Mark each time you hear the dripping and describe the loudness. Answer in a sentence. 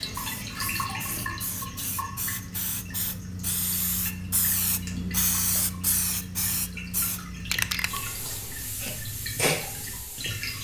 You can hear the dripping from 0.0 to 10.5 s, getting quieter then louder.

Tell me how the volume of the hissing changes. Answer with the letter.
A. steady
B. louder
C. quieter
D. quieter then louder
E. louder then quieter
E.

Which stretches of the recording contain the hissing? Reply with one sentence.
The hissing can be heard from 0.0 to 10.5 s.